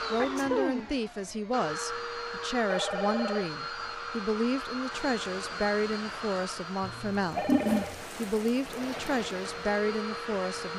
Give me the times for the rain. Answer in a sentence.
The rain can be heard from 4.9 to 10.7 s.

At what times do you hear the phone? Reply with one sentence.
You can hear the phone from 2.7 to 3.5 s and from 7.3 to 8.0 s.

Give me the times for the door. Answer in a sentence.
The door can't be heard in this clip.